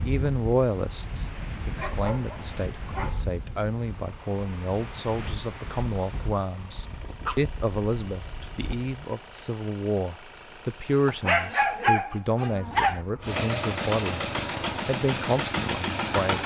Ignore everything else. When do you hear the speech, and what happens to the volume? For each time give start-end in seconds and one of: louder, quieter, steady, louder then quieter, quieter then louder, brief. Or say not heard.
0.0-14.2 steady
14.8-16.4 brief.